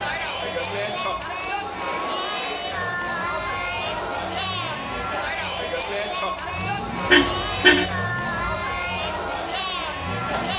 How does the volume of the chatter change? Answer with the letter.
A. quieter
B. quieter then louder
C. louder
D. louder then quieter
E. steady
E.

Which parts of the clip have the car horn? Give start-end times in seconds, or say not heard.
7.1-7.8.